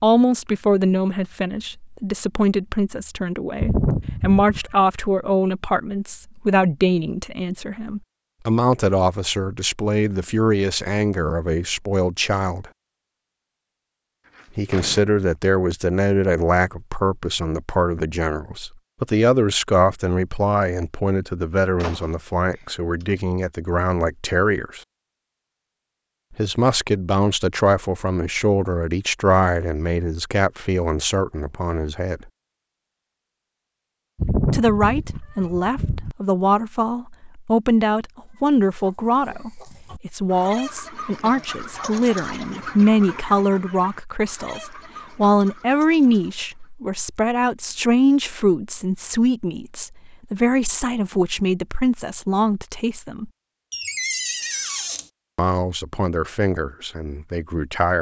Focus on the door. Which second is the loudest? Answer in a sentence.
The loudest moment of the door is at 54 seconds.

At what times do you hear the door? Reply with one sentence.
The door can be heard from 14.2 to 15.1 s, from 21.8 to 23.1 s and from 53.7 to 55.1 s.